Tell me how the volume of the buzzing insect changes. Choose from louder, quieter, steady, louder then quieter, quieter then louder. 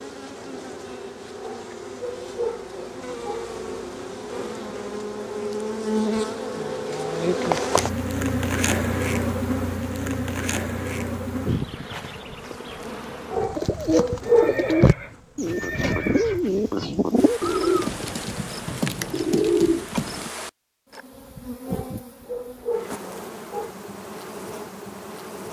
louder then quieter.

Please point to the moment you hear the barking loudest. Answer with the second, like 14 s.
14 s.